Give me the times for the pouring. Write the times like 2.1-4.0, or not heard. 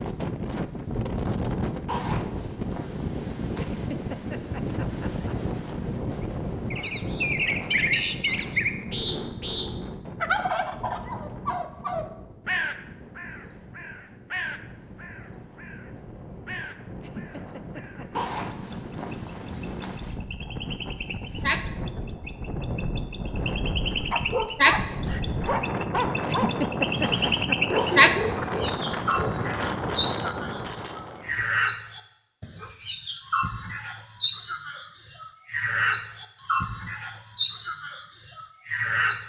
not heard.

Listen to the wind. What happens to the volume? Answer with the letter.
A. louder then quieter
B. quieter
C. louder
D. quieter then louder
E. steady
D.